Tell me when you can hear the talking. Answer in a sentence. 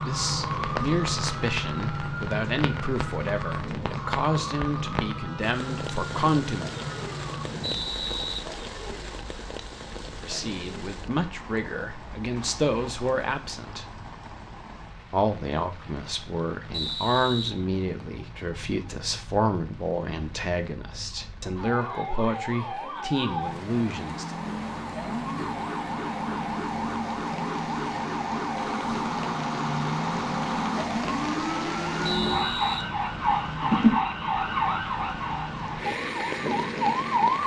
You can hear the talking from 0.0 to 6.7 s, from 10.2 to 13.8 s and from 15.1 to 24.4 s.